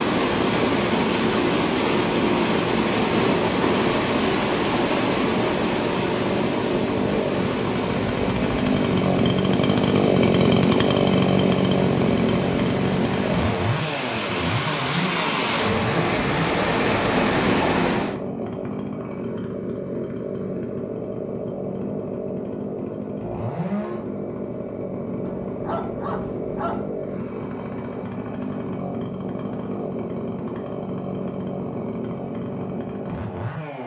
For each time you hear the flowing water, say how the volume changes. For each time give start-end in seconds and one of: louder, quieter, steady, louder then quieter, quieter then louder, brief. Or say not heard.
0.0-18.2 quieter then louder.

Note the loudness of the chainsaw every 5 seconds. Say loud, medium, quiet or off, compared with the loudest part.
medium, loud, loud, medium, medium, medium, medium.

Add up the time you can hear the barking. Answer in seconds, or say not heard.
2 s.